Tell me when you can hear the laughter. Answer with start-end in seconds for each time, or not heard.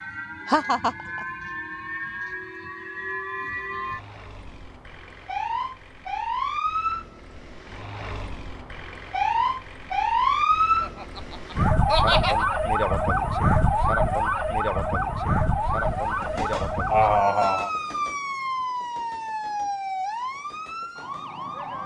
0.5-1.2, 10.8-12.4, 16.9-17.7.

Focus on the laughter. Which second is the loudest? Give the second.
17 s.